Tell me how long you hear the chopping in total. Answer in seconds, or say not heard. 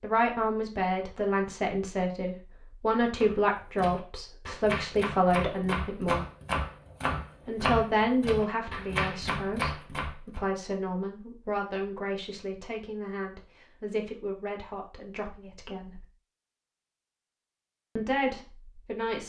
7 s.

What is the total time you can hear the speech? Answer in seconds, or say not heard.
16 s.